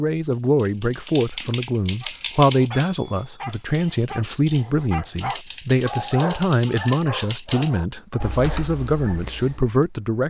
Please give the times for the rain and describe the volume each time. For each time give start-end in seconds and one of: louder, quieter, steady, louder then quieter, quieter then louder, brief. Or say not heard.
not heard.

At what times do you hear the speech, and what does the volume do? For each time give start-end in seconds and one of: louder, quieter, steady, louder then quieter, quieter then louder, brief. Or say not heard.
0.0-10.2 steady.